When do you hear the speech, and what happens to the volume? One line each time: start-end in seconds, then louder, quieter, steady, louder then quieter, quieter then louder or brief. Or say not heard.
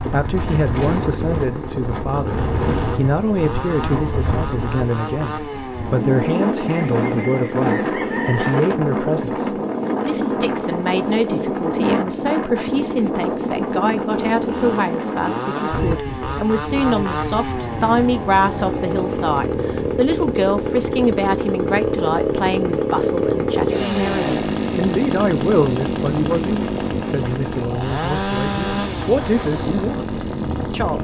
0.1-30.9 steady.